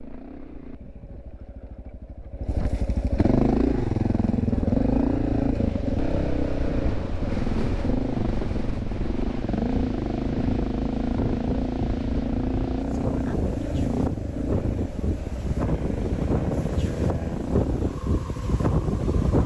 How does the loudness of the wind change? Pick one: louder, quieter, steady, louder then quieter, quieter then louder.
louder.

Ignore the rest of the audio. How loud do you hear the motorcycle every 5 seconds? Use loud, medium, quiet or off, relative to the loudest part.
loud, loud, loud, medium.